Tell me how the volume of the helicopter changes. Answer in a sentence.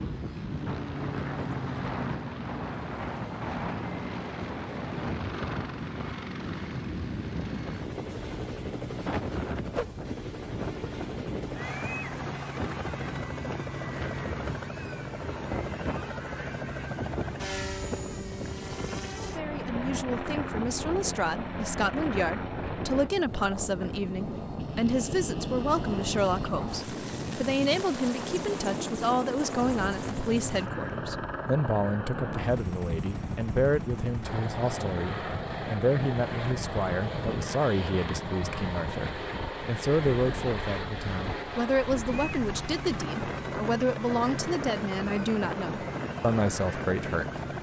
The volume of the helicopter stays about the same.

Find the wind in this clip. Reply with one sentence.
The wind can be heard from 0.0 to 47.5 s.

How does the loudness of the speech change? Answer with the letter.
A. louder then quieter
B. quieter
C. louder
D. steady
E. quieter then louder
D.